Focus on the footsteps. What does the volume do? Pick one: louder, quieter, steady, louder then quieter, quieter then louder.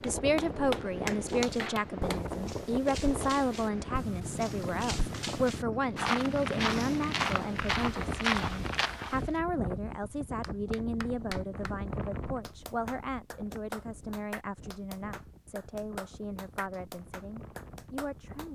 louder.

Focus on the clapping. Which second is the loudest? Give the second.
2 s.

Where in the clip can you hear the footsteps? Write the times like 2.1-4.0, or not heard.
1.2-9.2.